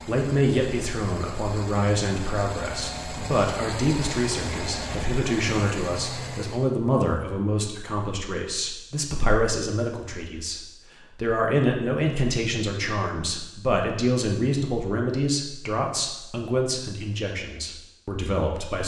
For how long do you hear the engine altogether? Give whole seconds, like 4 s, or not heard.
7 s.